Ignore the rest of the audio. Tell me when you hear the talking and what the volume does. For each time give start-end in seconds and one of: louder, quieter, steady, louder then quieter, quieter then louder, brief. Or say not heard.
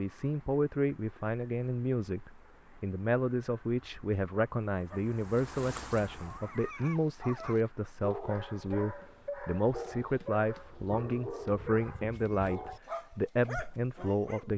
0.0-14.5 steady.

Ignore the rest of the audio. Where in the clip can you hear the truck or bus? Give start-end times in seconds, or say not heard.
not heard.